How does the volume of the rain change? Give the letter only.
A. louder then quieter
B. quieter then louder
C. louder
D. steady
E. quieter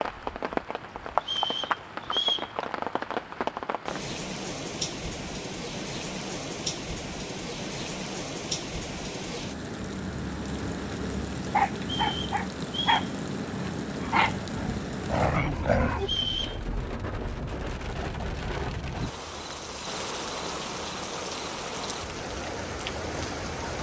D.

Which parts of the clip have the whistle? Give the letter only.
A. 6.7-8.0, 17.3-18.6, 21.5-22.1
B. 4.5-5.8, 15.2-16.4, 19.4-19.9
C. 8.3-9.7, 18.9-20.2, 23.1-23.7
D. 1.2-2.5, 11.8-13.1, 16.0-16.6
D.